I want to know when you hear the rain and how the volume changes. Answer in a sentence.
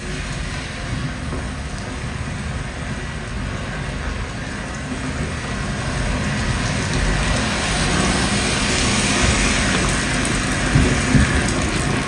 You can hear the rain from 0.0 to 12.0 s, getting louder.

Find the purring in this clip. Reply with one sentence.
The purring can be heard from 7.8 to 12.0 s.